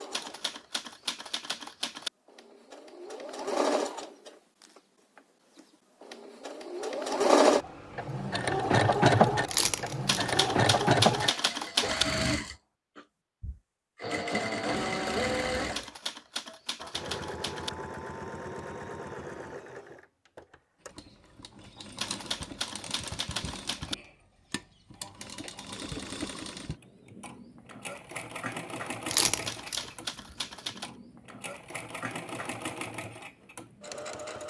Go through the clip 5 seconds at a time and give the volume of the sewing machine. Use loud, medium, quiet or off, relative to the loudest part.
medium, loud, loud, medium, quiet, quiet, quiet.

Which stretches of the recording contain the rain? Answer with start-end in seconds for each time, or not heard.
not heard.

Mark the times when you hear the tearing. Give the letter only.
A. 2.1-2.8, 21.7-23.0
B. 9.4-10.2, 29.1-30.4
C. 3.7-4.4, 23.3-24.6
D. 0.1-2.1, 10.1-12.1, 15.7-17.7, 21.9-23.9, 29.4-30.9
B.